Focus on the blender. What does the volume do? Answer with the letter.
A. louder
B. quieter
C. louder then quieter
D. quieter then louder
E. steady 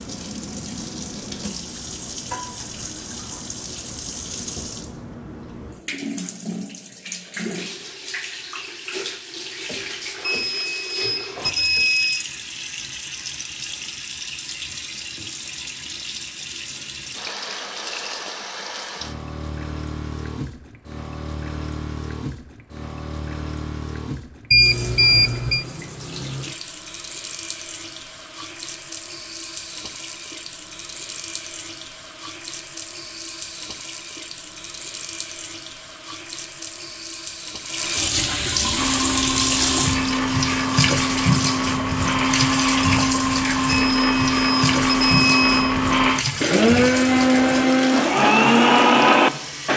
A.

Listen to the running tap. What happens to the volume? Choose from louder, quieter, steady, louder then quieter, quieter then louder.
louder.